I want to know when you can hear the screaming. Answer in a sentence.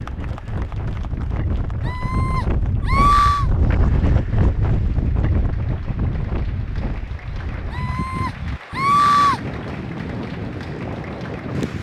The screaming can be heard from 1.9 to 3.5 s and from 7.7 to 9.4 s.